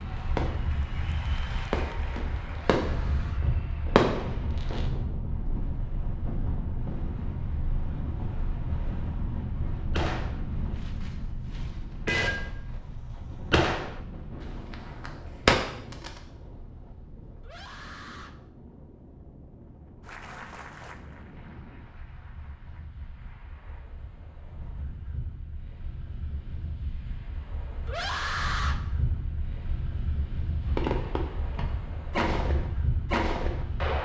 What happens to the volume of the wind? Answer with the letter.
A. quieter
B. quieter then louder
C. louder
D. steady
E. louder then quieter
B.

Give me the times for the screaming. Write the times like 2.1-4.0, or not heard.
2.8-3.5, 17.4-18.4, 27.9-28.8.